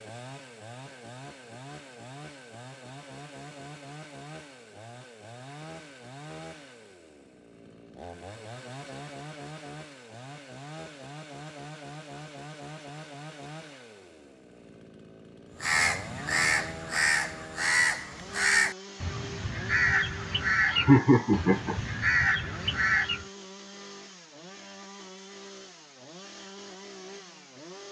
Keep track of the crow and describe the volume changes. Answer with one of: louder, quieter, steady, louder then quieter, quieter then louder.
steady.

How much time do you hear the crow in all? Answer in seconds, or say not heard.
8 s.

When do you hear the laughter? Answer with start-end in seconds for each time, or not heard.
20.7-21.8.